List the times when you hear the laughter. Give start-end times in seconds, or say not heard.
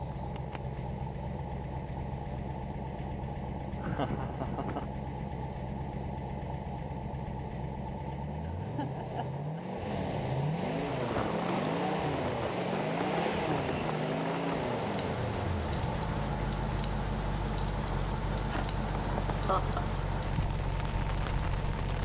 3.8-4.9, 8.4-9.8, 18.4-20.0.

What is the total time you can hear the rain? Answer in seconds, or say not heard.
11 s.